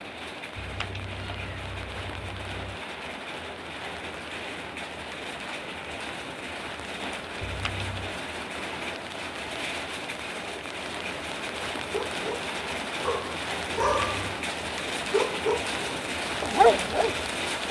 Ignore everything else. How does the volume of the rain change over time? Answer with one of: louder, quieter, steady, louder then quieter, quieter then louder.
louder.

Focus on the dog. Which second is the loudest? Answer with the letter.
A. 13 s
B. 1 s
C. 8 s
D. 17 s
D.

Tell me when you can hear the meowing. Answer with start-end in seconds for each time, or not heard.
0.6-2.8, 7.4-8.2, 13.8-14.2.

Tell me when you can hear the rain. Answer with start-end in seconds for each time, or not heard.
0.0-17.6.